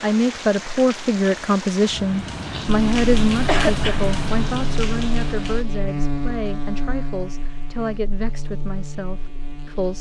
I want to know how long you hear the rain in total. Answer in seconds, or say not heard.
6 s.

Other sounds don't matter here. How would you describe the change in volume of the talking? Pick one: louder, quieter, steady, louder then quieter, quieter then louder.
quieter.